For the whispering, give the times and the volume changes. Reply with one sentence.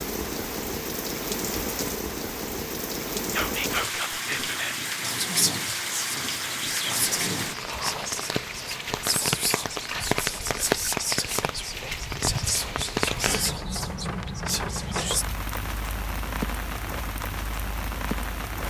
You can hear the whispering from 3.3 to 15.2 s, at a steady volume.